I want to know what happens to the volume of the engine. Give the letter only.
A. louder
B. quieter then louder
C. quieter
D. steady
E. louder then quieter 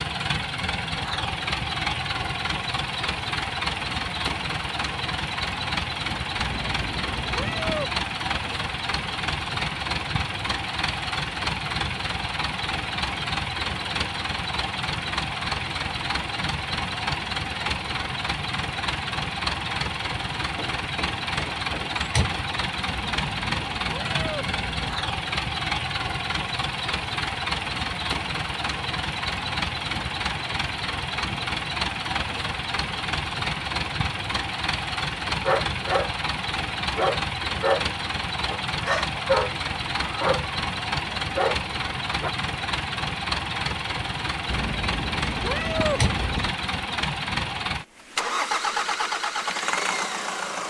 D.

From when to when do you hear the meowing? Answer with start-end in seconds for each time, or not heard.
6.3-8.0, 22.9-24.9, 44.5-46.5.